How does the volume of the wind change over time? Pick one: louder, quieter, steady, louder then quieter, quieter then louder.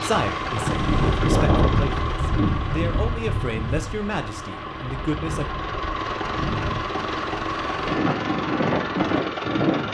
quieter then louder.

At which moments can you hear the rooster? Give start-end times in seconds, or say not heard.
not heard.